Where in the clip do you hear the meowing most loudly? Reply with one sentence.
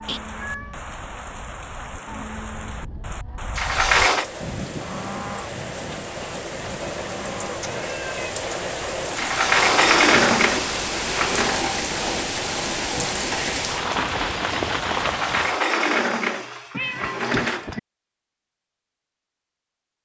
The volume of the meowing peaks at 17 seconds.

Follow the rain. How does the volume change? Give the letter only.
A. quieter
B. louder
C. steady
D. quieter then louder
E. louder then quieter
B.